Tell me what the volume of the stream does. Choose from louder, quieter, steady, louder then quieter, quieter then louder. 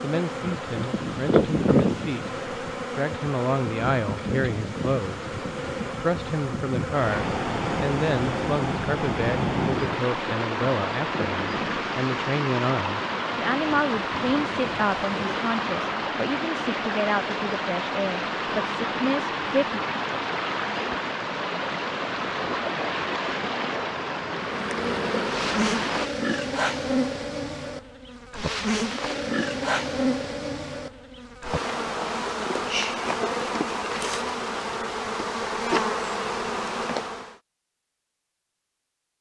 louder.